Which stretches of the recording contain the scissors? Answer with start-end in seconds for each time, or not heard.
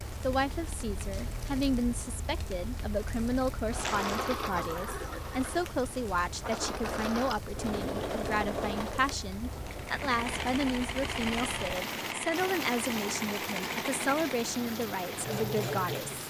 not heard.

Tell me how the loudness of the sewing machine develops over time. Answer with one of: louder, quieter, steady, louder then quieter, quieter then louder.
louder.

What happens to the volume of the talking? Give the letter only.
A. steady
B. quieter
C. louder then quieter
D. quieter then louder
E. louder
A.